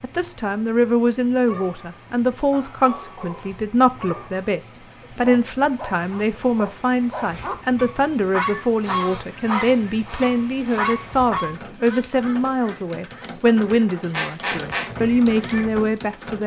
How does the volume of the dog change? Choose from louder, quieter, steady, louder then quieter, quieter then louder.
louder.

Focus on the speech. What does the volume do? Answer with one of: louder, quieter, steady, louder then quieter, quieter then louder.
steady.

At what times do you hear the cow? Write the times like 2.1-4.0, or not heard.
not heard.